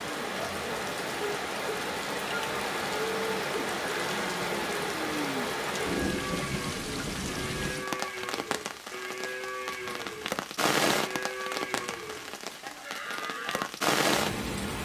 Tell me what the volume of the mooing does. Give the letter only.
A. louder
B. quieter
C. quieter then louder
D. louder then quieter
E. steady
E.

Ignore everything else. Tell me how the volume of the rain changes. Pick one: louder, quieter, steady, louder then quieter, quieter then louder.
steady.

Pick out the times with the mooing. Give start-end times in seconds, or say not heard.
2.2-13.7.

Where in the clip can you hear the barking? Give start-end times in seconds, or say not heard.
not heard.